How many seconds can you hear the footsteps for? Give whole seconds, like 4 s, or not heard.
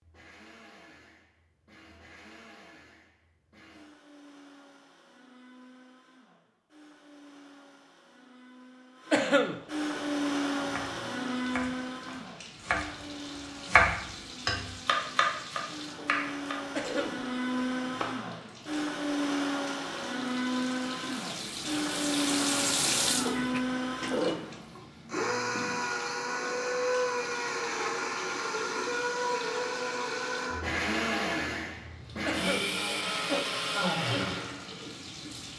not heard.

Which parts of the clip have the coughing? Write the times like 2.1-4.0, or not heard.
9.1-10.0, 16.7-17.2, 32.2-33.5.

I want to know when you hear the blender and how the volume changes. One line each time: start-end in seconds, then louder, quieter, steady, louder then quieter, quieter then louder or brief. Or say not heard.
0.0-35.5 louder.